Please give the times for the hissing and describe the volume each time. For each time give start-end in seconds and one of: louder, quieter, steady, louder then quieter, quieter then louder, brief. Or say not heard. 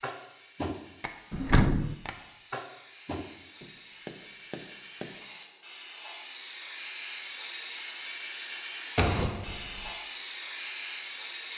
0.0-11.5 louder.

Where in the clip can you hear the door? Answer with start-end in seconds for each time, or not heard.
1.3-1.9, 8.9-9.9.